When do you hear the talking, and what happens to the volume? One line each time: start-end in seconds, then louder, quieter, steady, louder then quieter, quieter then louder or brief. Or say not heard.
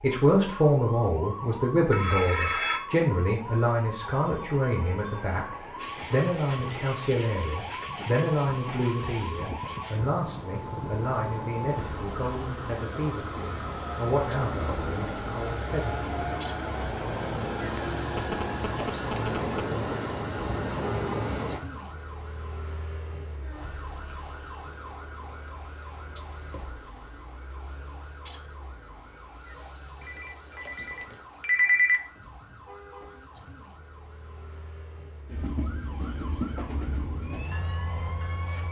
0.0-16.3 quieter.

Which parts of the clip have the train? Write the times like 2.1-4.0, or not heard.
5.8-21.6, 35.2-38.6.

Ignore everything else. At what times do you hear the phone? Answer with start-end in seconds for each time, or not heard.
1.9-2.8, 17.8-19.6, 30.0-31.9.